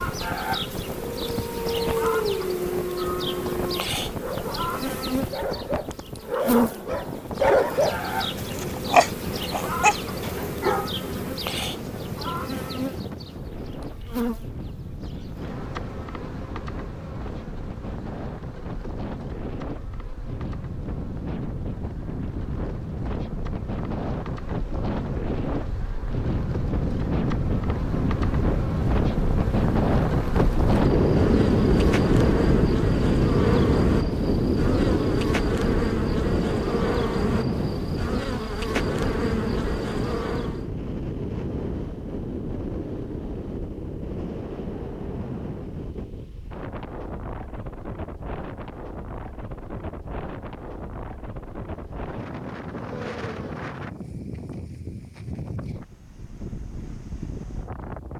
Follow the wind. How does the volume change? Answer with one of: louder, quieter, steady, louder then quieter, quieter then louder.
louder then quieter.